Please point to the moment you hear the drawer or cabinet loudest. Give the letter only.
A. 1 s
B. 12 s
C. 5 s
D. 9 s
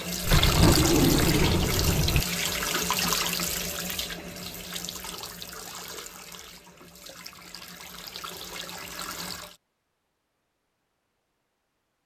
A.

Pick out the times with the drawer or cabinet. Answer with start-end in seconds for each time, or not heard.
0.2-2.2.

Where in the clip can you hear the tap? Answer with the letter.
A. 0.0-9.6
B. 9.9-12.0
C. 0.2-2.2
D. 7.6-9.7
A.